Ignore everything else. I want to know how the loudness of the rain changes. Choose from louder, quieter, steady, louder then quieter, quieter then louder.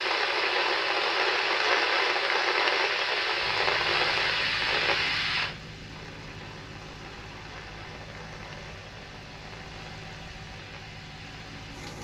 quieter.